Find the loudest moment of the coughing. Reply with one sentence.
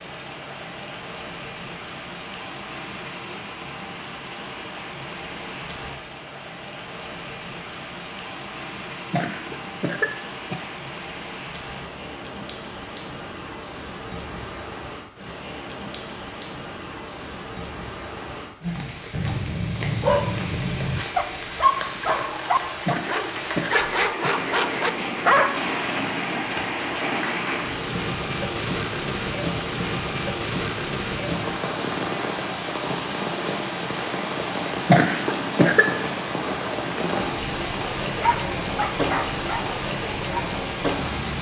The volume of the coughing peaks at 35 seconds.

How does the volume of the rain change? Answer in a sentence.
The loudness of the rain goes up.